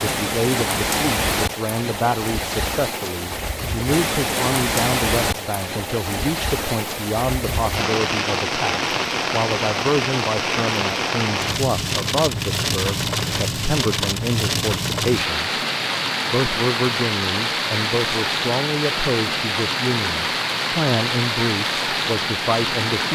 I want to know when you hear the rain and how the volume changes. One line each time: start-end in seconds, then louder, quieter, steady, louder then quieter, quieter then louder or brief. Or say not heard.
0.0-23.1 steady.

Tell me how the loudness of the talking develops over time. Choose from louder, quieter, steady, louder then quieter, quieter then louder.
steady.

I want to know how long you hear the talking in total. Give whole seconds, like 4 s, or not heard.
22 s.